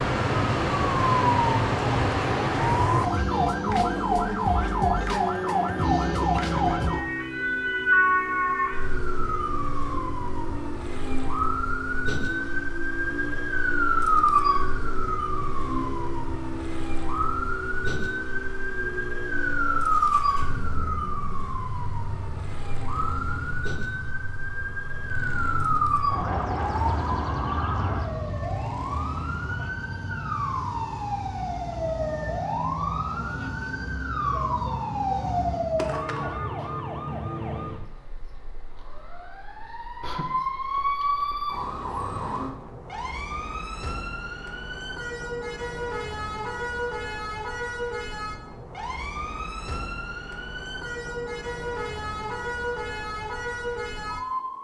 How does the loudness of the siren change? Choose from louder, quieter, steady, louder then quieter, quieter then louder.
quieter.